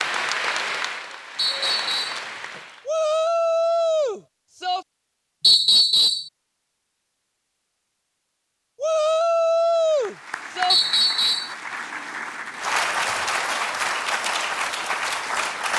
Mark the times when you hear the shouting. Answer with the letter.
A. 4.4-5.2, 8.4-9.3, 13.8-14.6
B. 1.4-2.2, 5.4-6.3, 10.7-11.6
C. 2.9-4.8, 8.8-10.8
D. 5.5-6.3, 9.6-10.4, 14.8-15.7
C.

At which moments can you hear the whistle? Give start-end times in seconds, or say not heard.
1.4-2.2, 5.4-6.3, 10.7-11.6.